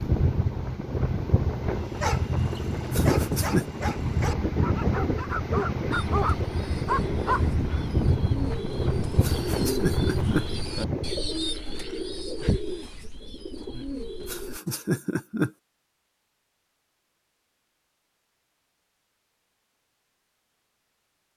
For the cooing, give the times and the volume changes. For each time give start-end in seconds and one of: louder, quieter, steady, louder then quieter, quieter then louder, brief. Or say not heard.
5.9-14.6 louder then quieter.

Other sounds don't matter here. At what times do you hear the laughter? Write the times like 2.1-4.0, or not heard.
2.9-3.6, 9.2-10.4, 14.2-15.5.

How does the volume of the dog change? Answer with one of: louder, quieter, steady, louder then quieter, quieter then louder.
louder.